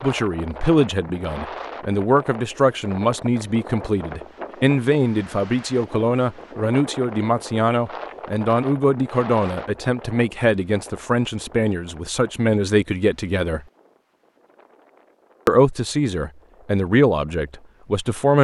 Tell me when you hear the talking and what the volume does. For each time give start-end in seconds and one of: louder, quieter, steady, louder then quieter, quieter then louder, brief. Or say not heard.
0.0-13.6 steady
15.4-18.3 brief.